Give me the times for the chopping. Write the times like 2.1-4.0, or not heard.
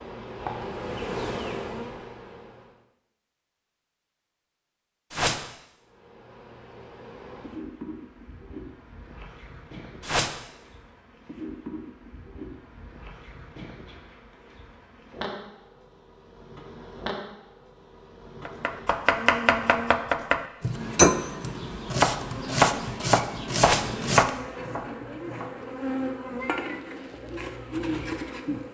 18.4-25.6.